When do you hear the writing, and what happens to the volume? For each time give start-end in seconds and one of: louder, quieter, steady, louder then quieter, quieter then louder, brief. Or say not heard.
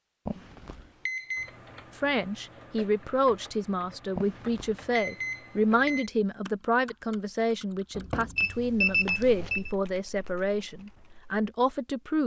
not heard.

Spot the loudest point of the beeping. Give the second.
9 s.